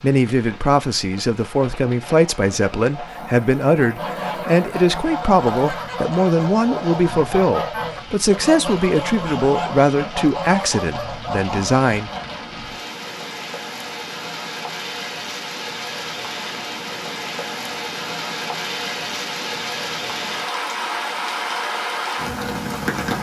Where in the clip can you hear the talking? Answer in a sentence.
You can hear the talking from 0.0 to 12.1 s.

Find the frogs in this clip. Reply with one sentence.
The frogs can't be heard in this clip.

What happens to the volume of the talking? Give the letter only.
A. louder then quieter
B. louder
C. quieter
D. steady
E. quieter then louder
D.